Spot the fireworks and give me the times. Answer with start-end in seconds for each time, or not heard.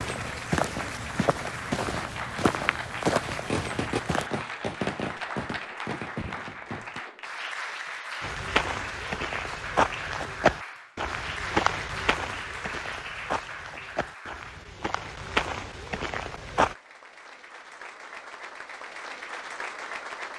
3.5-7.0.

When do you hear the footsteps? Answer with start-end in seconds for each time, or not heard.
0.0-4.3, 8.2-16.8.